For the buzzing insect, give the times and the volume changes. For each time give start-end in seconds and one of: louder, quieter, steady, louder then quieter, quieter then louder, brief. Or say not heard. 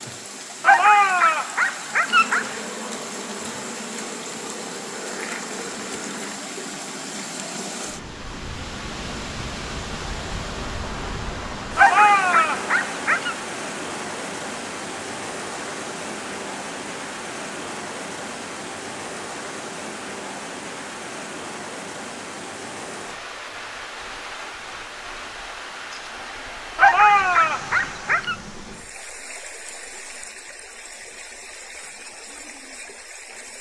2.0-6.3 steady.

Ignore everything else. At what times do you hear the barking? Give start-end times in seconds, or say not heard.
0.6-2.5, 11.8-13.3, 26.8-28.4.